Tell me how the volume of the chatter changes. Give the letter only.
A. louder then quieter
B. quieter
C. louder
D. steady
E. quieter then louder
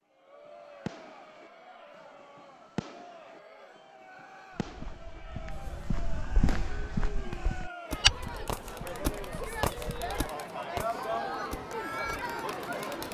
C.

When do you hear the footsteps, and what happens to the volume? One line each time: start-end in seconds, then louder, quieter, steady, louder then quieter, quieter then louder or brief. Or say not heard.
4.5-10.2 louder then quieter.